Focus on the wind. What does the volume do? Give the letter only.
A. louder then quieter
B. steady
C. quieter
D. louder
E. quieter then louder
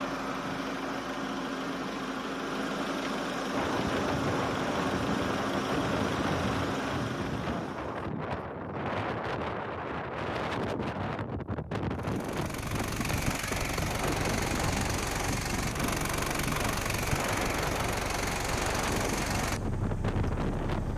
B.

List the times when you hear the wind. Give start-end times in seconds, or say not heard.
3.5-20.9.